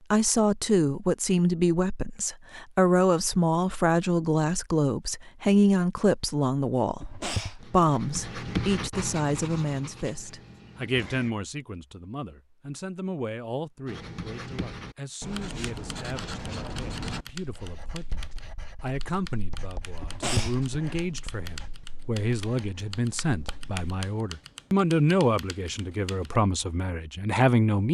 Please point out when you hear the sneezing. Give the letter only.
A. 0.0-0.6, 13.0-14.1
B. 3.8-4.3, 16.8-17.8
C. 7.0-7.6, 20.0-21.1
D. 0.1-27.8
C.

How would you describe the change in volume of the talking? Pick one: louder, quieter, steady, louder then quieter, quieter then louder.
quieter then louder.